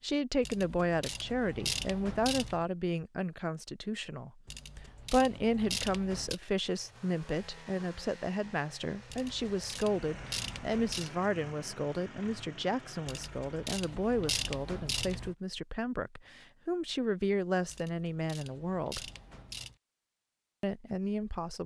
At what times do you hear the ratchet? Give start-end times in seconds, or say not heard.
0.4-2.6, 4.5-6.4, 9.1-11.1, 13.1-15.3, 17.6-19.8.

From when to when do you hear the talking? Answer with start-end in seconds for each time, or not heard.
0.0-19.1, 20.6-21.6.